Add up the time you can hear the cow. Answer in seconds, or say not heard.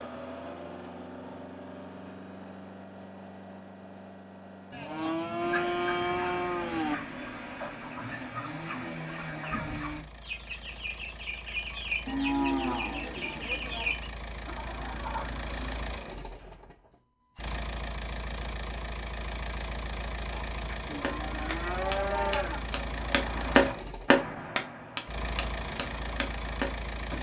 6 s.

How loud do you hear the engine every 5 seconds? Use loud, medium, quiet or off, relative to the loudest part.
medium, medium, medium, loud, loud, loud.